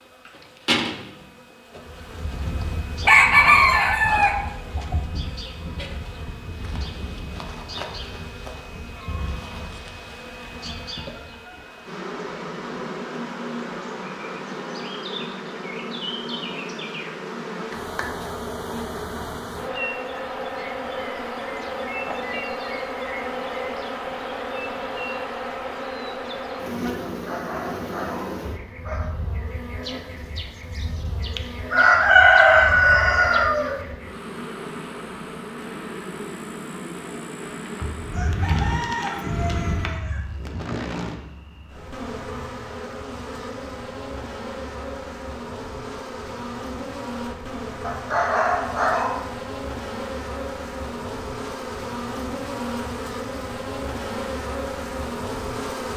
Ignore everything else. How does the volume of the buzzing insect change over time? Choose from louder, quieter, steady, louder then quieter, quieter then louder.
steady.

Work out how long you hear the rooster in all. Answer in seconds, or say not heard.
8 s.